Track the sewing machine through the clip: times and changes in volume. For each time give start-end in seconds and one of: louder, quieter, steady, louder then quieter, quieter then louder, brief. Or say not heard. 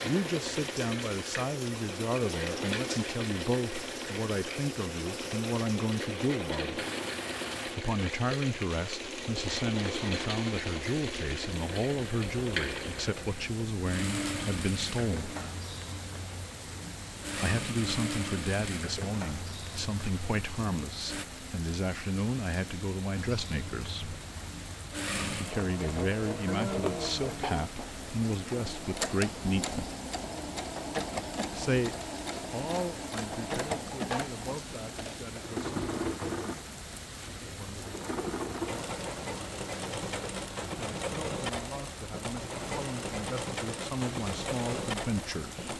0.0-21.2 steady
23.1-45.7 steady.